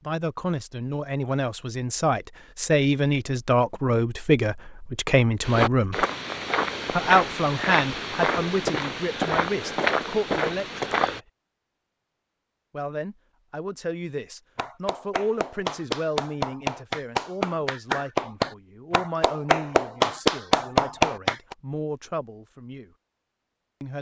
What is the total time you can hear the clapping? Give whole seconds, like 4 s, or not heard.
7 s.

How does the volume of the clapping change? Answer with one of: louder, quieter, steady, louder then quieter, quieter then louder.
louder.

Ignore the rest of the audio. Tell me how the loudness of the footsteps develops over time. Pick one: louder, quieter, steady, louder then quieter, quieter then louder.
steady.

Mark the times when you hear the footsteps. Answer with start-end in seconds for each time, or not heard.
5.4-11.2.